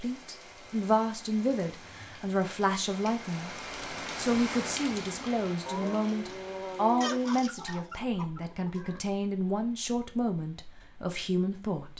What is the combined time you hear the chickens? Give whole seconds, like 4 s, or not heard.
2 s.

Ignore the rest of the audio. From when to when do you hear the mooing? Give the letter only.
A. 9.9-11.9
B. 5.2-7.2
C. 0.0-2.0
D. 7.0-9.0
B.